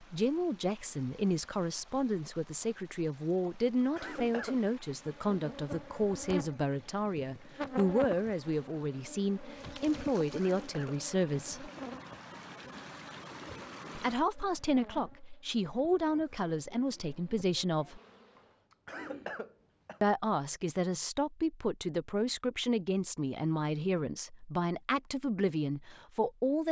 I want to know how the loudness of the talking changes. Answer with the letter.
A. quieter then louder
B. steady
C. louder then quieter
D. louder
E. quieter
B.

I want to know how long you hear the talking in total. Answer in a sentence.
The talking can be heard for 22 seconds in total.